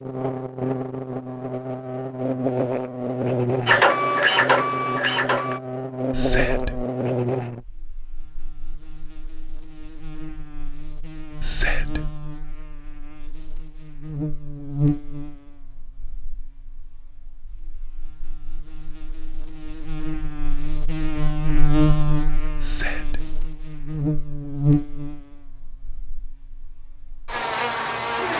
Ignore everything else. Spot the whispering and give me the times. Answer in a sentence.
You can hear the whispering from 6.1 to 6.8 s, from 11.4 to 12.2 s and from 22.6 to 23.4 s.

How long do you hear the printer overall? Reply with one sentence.
You can hear the printer for 2 seconds altogether.